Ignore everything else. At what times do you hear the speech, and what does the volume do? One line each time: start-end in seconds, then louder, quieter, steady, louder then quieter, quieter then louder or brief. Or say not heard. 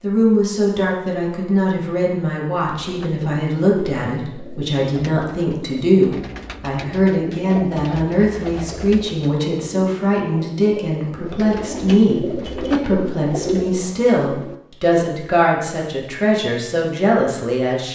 0.0-17.8 steady.